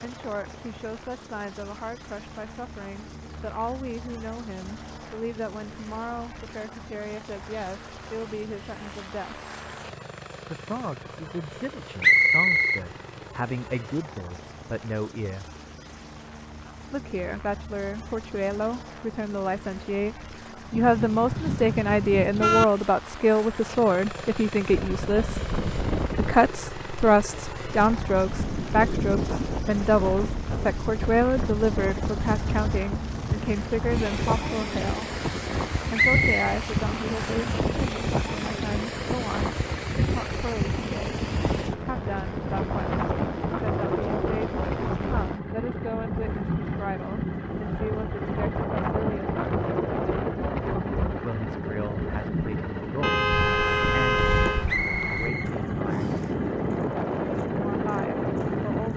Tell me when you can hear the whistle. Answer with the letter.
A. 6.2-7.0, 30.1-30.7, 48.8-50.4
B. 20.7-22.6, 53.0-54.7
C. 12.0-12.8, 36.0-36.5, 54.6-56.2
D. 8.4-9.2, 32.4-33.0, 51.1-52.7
C.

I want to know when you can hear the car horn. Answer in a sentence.
You can hear the car horn from 20.7 to 22.6 s and from 53.0 to 54.7 s.